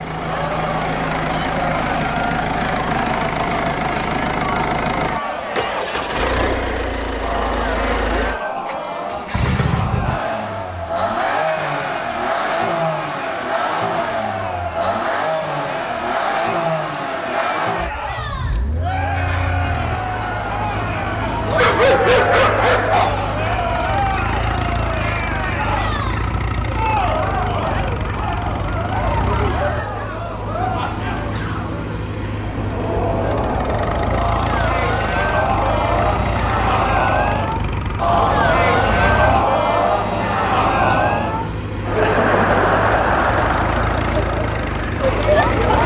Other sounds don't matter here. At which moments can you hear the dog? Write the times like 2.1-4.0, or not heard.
21.4-23.2.